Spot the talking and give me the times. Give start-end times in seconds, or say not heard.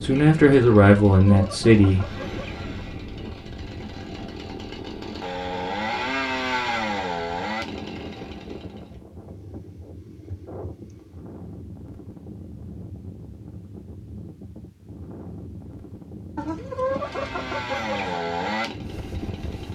0.0-2.0.